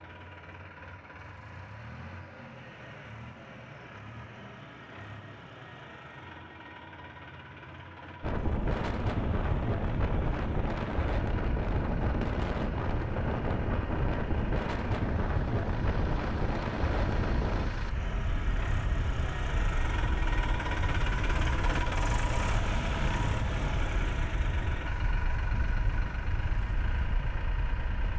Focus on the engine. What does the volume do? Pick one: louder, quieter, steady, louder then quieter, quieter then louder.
louder.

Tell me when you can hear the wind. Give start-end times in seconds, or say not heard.
8.2-28.1.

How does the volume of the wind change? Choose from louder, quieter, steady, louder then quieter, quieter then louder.
quieter.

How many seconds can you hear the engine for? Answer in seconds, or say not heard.
28 s.